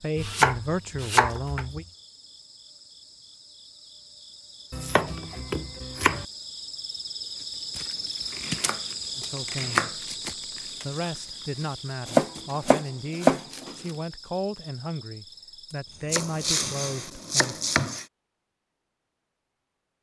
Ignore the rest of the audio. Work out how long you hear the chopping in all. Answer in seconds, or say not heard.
8 s.